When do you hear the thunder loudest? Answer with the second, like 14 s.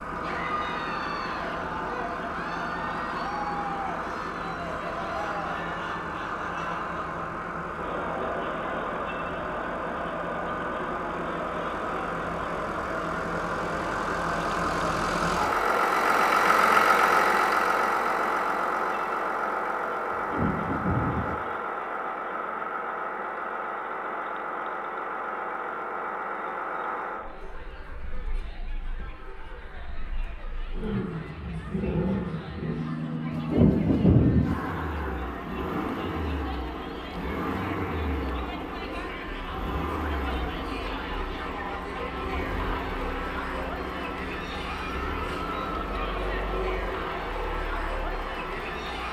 34 s.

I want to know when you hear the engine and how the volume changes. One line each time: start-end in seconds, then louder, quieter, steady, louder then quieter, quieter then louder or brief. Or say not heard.
0.0-49.0 louder then quieter.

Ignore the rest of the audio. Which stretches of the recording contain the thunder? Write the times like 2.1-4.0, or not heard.
20.1-21.4, 33.3-34.5.